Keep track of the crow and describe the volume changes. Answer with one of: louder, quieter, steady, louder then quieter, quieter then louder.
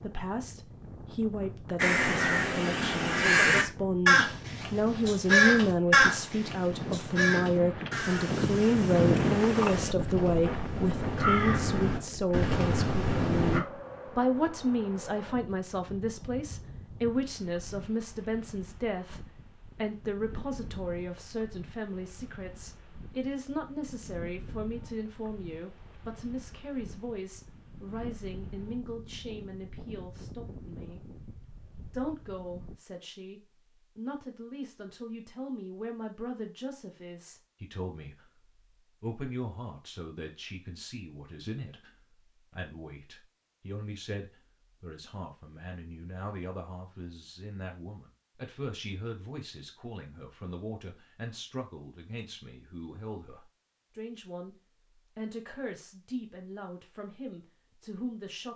quieter then louder.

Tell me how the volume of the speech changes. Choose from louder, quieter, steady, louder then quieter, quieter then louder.
quieter.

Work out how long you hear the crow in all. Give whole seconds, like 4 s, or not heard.
12 s.